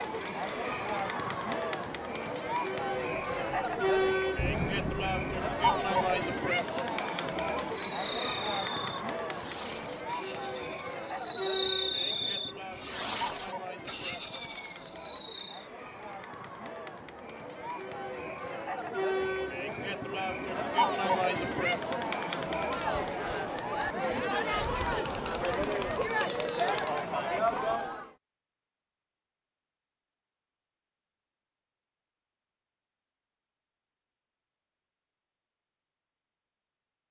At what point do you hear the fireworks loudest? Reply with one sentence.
The loudest moment of the fireworks is at 14 seconds.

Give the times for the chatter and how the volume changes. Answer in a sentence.
You can hear the chatter from 0.0 to 28.1 s, getting quieter then louder.